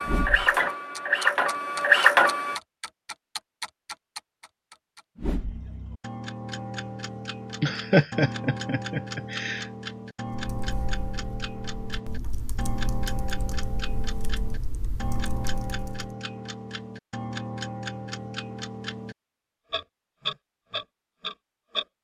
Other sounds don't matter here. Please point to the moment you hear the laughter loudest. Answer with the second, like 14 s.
8 s.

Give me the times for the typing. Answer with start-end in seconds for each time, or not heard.
10.3-16.1.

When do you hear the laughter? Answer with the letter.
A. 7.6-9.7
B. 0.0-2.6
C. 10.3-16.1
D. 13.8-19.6
A.